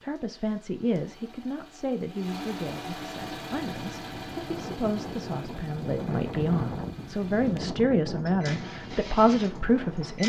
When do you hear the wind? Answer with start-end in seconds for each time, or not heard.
3.2-10.2.